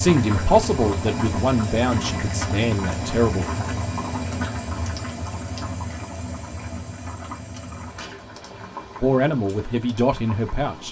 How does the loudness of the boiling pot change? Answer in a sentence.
The volume of the boiling pot goes down.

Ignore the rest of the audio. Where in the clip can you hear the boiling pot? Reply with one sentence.
The boiling pot can be heard from 0.0 to 10.8 s.